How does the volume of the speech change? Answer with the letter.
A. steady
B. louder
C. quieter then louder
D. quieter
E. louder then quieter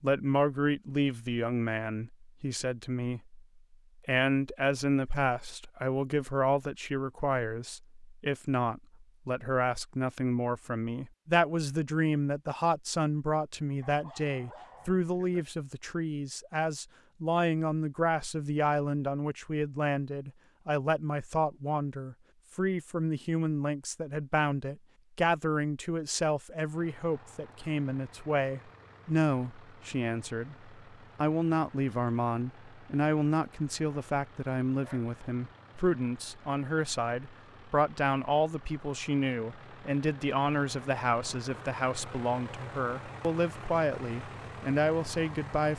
A.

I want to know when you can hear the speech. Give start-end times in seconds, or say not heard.
0.0-45.7.